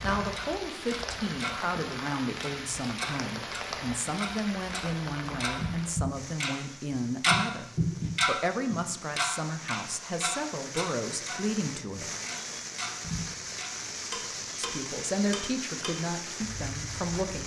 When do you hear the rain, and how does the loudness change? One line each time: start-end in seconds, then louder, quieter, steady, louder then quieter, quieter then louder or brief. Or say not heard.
0.0-17.4 quieter then louder.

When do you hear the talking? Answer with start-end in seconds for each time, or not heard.
0.0-12.1, 14.6-17.4.